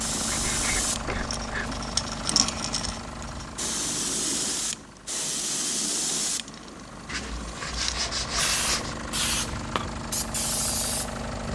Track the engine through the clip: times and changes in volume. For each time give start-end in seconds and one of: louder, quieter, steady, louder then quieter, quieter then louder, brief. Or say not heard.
0.0-11.4 quieter then louder.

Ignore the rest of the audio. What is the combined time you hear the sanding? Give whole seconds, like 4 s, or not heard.
3 s.